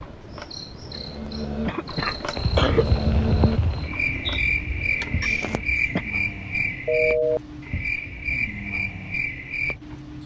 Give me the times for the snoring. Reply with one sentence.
You can hear the snoring from 0.0 to 10.2 s.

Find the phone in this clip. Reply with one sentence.
You can hear the phone from 6.8 to 7.4 s.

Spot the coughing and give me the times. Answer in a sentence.
You can hear the coughing from 0.9 to 2.9 s and from 5.2 to 6.0 s.